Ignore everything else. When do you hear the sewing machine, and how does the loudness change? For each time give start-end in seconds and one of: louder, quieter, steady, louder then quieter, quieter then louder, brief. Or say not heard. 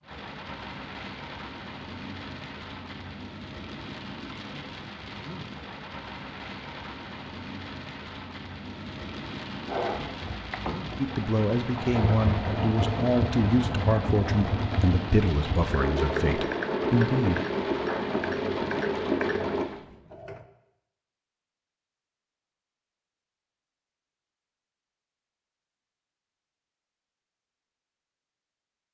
9.7-20.4 louder.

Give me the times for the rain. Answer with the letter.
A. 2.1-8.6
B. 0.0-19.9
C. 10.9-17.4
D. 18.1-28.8
B.